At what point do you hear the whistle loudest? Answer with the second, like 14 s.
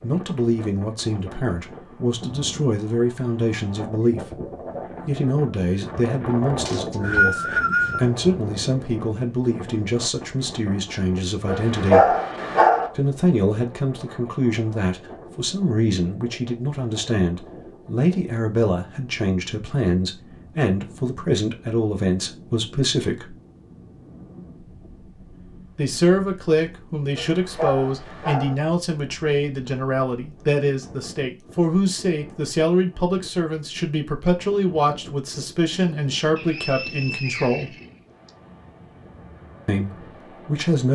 7 s.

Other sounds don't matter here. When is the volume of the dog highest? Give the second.
12 s.